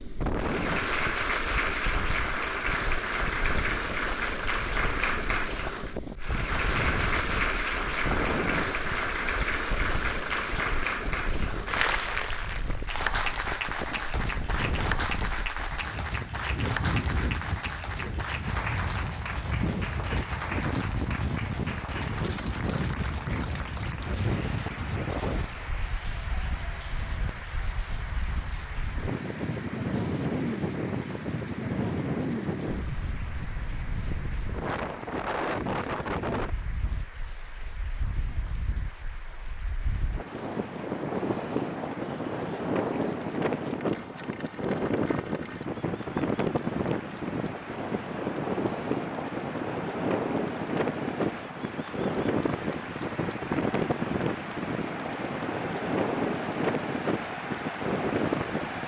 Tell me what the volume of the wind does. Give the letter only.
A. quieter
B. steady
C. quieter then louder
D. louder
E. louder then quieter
D.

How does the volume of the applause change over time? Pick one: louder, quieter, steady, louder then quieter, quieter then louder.
quieter then louder.